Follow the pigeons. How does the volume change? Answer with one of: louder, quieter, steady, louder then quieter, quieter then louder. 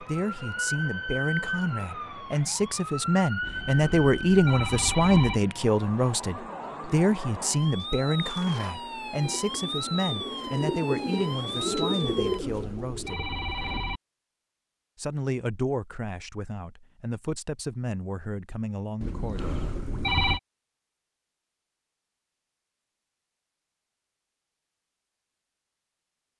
louder.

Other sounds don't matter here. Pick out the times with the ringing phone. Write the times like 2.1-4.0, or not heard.
3.4-5.4, 12.2-14.0, 19.0-20.4.